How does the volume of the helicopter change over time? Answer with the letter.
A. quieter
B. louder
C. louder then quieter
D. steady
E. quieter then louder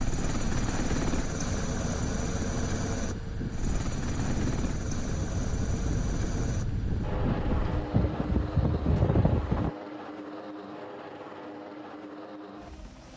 A.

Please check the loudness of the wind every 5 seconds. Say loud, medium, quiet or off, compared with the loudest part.
medium, loud, off.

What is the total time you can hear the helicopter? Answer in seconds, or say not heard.
13 s.